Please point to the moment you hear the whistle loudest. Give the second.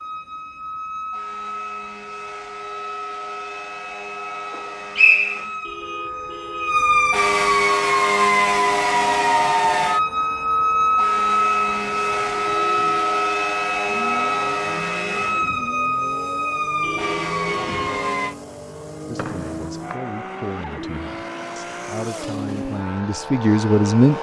5 s.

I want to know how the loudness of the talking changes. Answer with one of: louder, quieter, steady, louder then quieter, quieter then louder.
louder.